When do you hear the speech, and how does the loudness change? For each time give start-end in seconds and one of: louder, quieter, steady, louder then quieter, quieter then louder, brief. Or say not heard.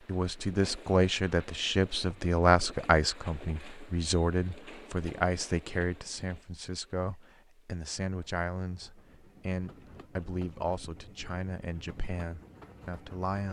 0.1-13.4 quieter.